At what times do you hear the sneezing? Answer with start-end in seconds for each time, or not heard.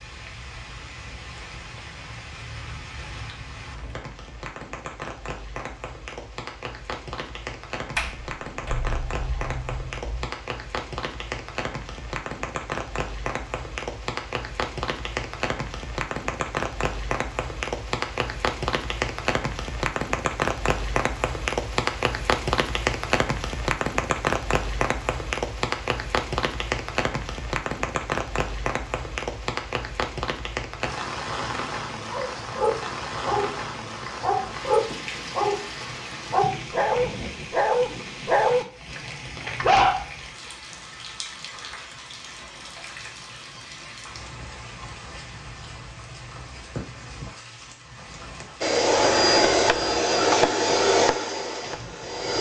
not heard.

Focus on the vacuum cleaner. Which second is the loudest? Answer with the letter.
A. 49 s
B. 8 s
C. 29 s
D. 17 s
A.